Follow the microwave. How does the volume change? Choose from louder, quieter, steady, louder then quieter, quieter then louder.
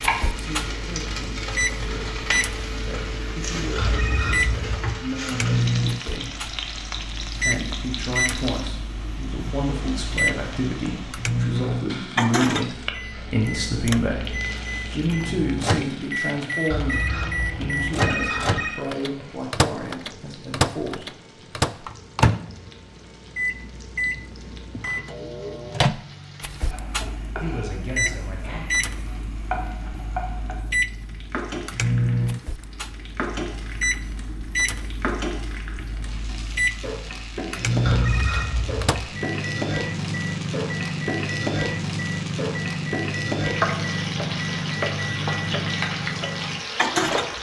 steady.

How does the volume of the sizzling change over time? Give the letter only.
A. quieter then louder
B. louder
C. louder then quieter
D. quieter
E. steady
A.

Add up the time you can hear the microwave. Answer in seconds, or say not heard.
47 s.